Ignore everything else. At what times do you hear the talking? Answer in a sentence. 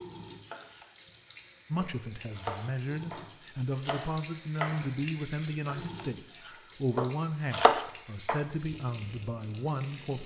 You can hear the talking from 1.7 to 10.2 s.